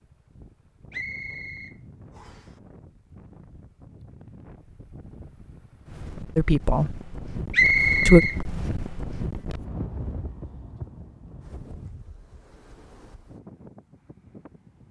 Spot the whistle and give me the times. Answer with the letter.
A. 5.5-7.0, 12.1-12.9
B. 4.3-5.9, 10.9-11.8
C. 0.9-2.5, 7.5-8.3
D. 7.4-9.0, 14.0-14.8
C.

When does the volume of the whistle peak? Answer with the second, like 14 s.
8 s.